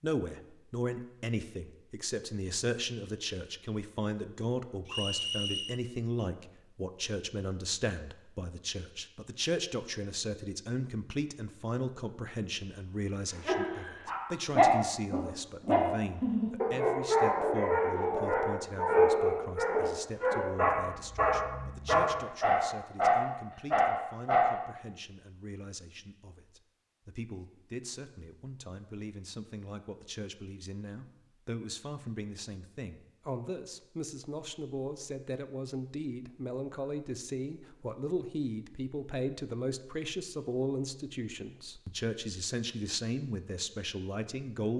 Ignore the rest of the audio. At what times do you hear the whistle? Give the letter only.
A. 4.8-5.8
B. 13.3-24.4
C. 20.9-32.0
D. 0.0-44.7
A.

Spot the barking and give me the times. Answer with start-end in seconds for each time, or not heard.
13.3-24.4.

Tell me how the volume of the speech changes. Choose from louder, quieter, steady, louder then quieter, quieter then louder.
quieter then louder.